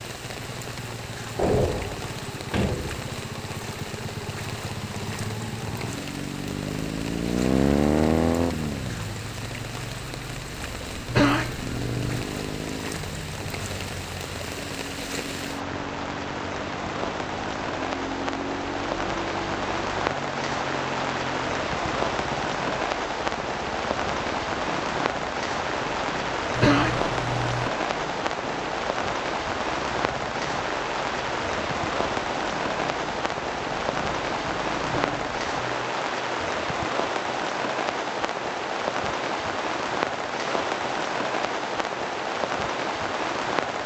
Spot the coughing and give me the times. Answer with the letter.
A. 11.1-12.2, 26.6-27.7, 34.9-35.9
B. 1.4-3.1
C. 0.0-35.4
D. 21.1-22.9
A.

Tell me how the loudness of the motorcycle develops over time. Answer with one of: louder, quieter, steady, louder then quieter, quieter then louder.
louder then quieter.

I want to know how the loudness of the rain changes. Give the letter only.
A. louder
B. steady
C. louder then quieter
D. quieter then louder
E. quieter
A.